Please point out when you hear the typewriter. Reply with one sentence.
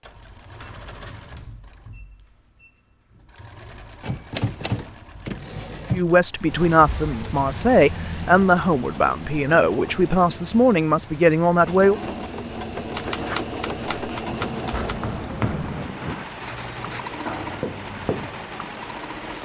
You can hear the typewriter from 4.0 to 6.0 s and from 12.9 to 14.9 s.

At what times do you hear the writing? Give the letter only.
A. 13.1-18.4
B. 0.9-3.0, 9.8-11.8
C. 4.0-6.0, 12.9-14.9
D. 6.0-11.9
A.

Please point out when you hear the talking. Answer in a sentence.
The talking can be heard from 6.0 to 11.9 s.